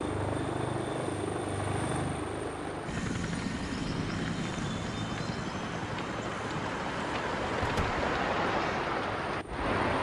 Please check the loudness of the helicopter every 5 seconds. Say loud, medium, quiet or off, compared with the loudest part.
loud, medium.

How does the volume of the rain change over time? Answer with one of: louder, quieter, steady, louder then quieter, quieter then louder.
louder.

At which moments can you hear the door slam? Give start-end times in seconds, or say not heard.
7.6-8.1.